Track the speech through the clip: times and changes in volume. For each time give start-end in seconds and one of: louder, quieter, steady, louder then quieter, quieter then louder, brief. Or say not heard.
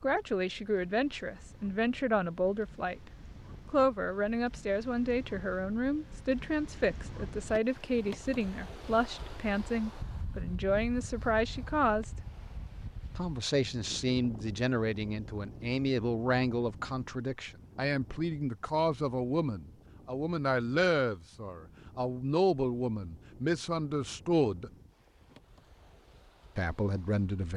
0.0-12.1 steady
13.2-24.7 steady
26.6-27.5 brief.